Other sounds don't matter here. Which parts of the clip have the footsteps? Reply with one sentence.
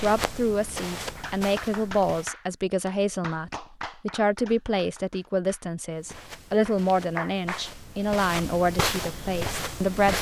The footsteps can be heard from 0.0 to 2.3 s and from 5.9 to 10.1 s.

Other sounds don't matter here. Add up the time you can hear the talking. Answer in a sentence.
You can hear the talking for 10 seconds altogether.